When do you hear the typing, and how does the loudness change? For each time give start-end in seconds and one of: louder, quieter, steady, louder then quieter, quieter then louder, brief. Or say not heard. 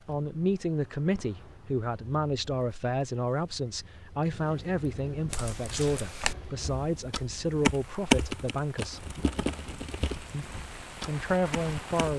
5.2-12.1 louder then quieter.